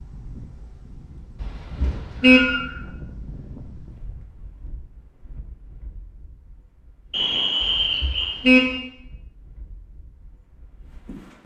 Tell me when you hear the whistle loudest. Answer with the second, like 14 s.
8 s.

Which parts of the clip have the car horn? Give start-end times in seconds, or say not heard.
1.4-2.5, 7.6-8.7.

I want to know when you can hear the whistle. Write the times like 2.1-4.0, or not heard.
1.8-2.8, 7.1-8.4.